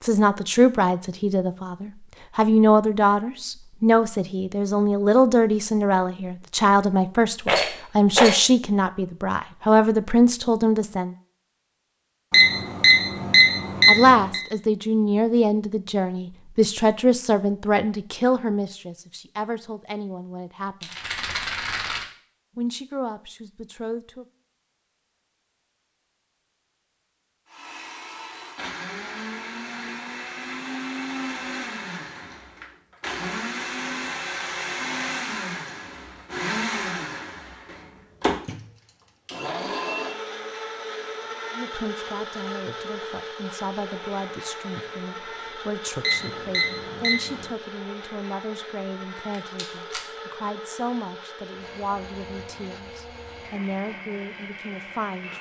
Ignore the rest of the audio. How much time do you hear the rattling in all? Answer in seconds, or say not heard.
3 s.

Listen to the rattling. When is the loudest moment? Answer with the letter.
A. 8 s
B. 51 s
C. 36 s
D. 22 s
A.